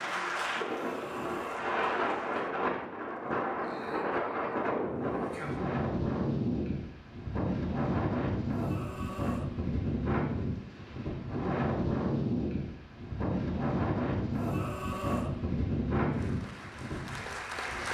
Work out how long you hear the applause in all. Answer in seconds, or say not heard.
4 s.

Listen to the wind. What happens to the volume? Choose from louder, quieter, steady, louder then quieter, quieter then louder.
steady.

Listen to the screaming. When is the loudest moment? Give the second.
15 s.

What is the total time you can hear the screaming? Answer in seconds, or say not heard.
3 s.